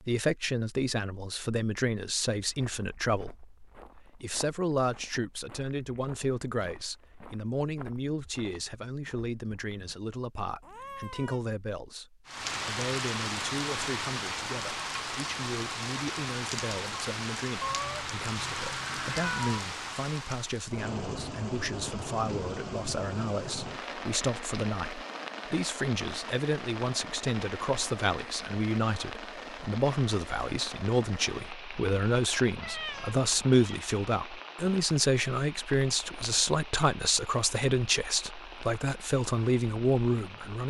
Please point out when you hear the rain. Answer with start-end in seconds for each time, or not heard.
12.2-40.6.